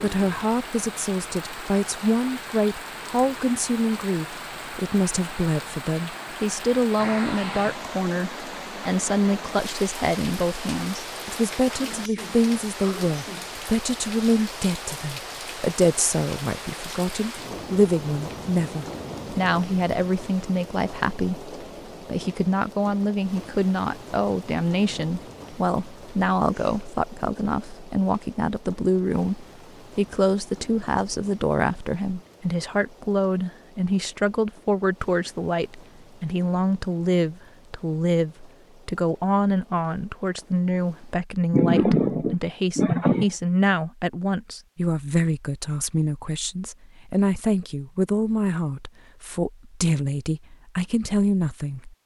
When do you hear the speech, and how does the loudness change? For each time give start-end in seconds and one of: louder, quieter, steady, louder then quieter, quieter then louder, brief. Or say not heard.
0.0-52.0 steady.